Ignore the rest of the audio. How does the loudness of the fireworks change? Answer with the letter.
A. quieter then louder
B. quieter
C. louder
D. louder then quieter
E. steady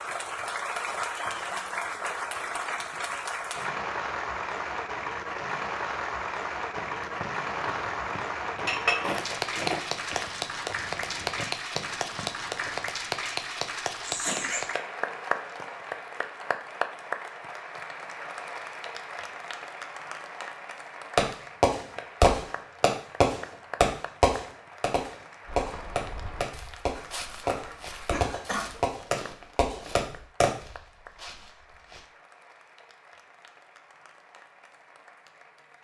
B.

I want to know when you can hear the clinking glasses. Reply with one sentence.
You can hear the clinking glasses from 8.7 to 9.2 s.